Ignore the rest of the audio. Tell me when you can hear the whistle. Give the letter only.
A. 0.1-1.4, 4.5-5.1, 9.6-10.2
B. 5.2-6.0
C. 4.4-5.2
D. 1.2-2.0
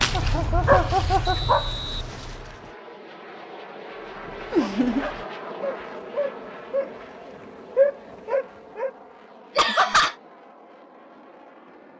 D.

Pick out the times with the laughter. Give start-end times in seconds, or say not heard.
0.1-1.4, 4.5-5.1, 9.6-10.2.